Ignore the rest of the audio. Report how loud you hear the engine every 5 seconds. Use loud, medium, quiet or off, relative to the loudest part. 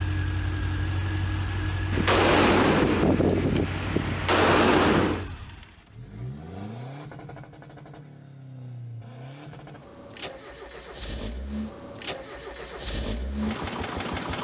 loud, medium, loud.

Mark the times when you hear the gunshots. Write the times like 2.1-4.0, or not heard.
1.9-5.2.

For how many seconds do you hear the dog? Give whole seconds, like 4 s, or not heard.
not heard.